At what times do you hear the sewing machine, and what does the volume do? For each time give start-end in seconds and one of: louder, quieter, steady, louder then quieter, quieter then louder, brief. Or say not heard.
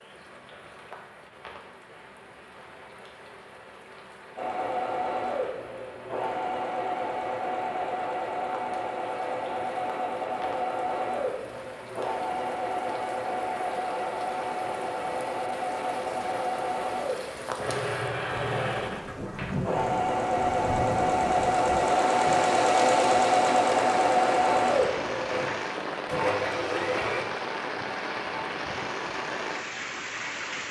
4.3-27.2 louder.